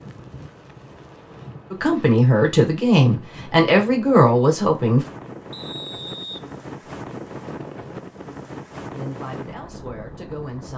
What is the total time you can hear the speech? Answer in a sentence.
You can hear the speech for 5 seconds altogether.